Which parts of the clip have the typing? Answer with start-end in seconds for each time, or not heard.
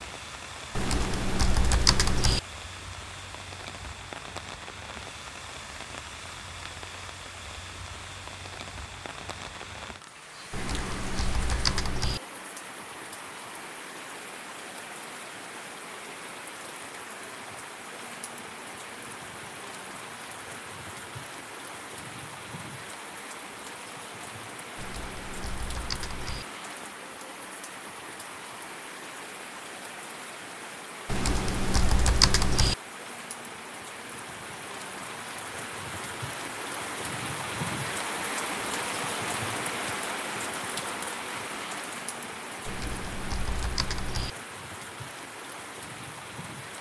0.8-2.4, 10.5-12.2, 24.8-26.4, 31.1-32.8, 42.6-44.3.